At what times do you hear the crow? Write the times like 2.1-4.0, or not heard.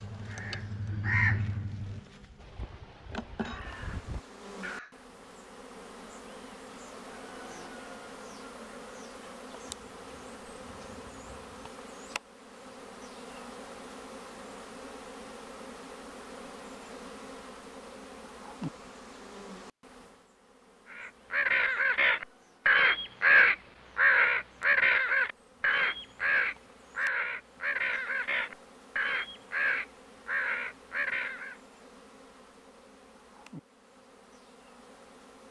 0.0-5.0, 20.9-31.6.